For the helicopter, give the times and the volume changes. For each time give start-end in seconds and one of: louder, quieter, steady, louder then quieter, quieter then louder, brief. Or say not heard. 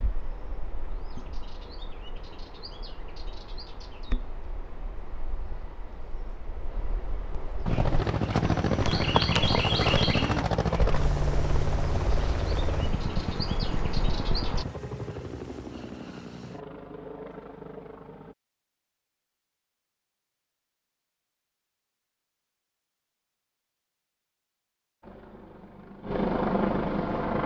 7.7-18.4 quieter
25.0-27.4 brief.